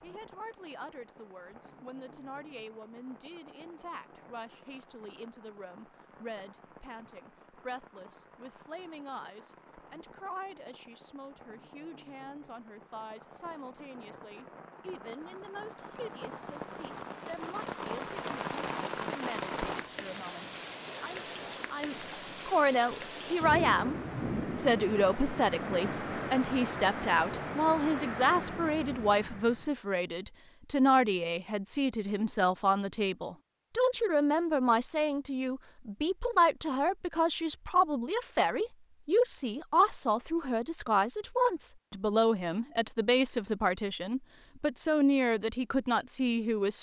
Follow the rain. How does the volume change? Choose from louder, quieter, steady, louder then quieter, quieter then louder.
louder.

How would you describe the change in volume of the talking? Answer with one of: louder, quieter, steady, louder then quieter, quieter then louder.
louder.